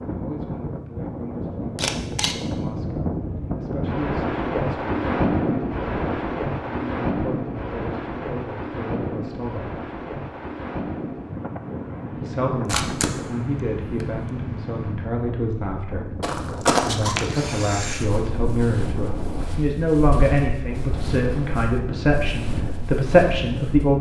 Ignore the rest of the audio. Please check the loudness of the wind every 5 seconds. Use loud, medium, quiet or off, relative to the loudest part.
loud, loud, medium, medium, medium.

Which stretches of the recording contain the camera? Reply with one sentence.
You can hear the camera from 1.8 to 2.4 s, from 12.5 to 14.3 s and from 16.9 to 18.1 s.